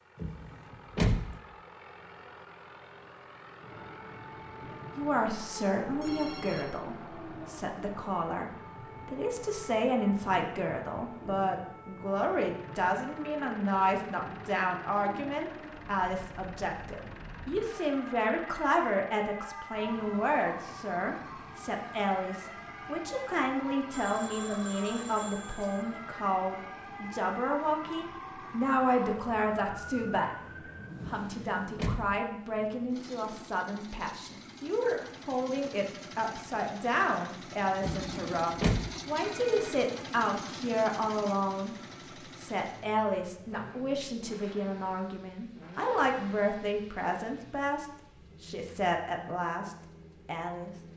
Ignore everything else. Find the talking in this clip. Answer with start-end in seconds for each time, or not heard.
4.7-30.4, 31.1-50.7.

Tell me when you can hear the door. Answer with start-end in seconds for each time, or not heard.
0.2-1.4, 31.0-32.2, 37.8-38.9.